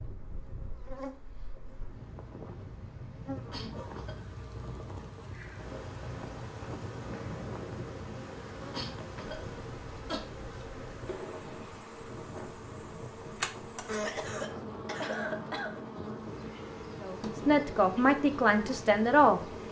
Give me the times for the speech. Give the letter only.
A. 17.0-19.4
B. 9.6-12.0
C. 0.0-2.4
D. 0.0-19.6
A.